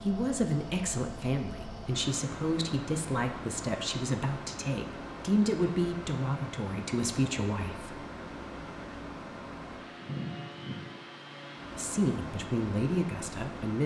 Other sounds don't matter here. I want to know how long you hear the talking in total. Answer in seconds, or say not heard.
10 s.